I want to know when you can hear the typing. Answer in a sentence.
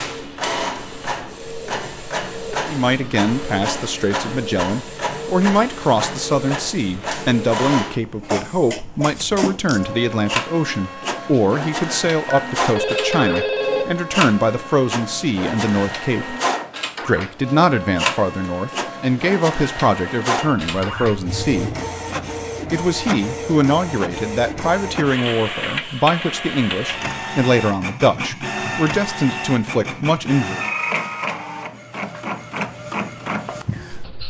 The typing can't be heard in this clip.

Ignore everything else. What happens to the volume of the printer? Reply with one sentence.
The loudness of the printer stays about the same.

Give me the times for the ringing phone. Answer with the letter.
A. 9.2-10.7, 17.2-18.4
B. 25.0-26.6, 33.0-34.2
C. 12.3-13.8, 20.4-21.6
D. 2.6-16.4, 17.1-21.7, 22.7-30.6
C.